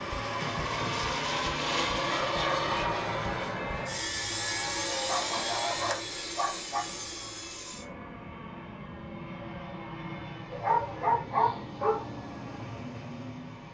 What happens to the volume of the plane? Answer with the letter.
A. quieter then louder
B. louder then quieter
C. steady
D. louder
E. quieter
E.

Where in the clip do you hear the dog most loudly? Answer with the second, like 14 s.
11 s.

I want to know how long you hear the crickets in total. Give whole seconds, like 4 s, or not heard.
not heard.